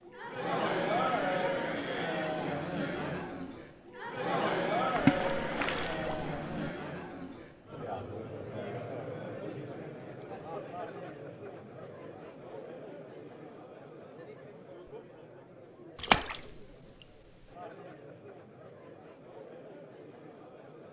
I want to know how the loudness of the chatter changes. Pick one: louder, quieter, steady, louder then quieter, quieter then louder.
quieter.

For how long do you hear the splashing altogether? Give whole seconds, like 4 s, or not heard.
2 s.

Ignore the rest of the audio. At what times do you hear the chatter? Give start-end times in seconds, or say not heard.
0.0-20.8.